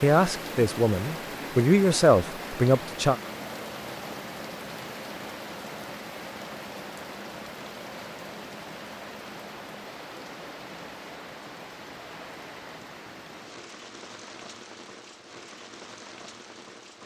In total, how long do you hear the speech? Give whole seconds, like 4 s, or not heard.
3 s.